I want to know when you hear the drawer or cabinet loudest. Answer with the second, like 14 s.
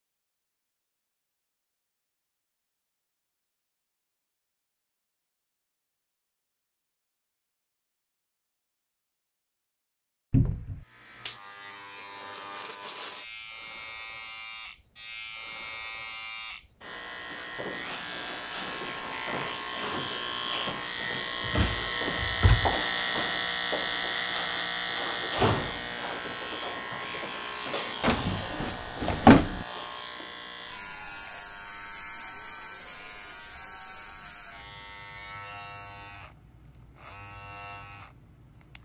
29 s.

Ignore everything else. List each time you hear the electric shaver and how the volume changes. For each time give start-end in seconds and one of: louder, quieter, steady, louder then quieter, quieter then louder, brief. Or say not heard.
10.8-38.8 louder then quieter.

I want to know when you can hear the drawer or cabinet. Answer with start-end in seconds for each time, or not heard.
10.3-10.8, 21.4-22.8, 28.0-29.6.